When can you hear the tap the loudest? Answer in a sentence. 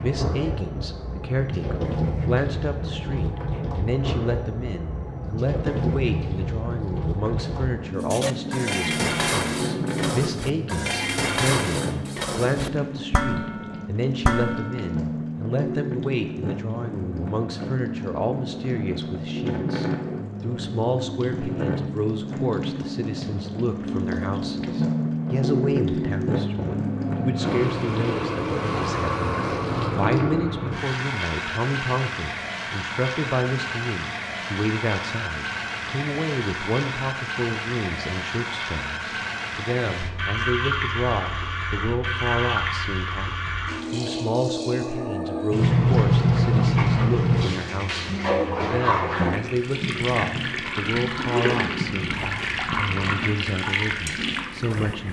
The volume of the tap peaks at 46 seconds.